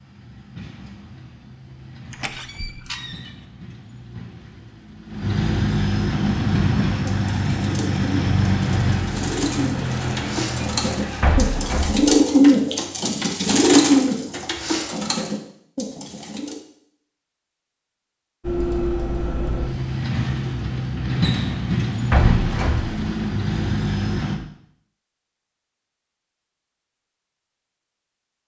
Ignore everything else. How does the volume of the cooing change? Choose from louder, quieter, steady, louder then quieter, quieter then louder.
louder then quieter.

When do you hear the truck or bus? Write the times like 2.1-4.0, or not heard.
0.0-11.7, 18.4-24.4.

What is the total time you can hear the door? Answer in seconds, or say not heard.
3 s.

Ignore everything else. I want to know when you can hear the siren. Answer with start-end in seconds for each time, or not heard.
not heard.